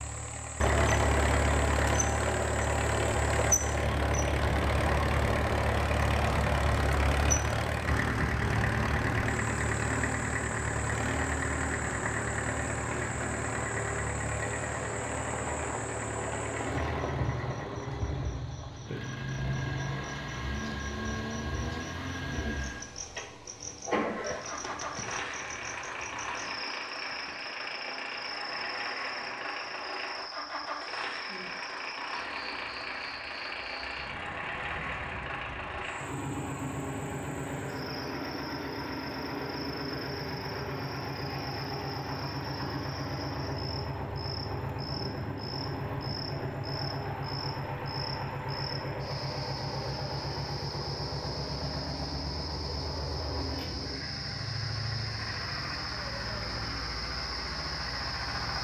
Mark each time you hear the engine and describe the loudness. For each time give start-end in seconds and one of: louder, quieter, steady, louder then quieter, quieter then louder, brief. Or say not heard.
0.0-58.5 quieter.